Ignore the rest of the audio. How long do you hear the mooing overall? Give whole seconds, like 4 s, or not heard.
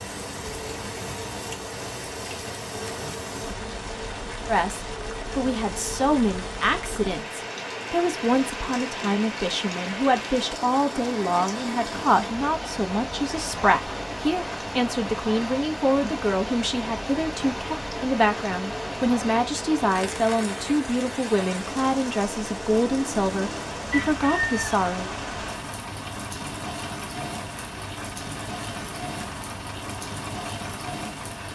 not heard.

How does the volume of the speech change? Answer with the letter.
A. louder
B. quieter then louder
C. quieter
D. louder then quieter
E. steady
E.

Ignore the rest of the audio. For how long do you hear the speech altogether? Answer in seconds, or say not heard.
21 s.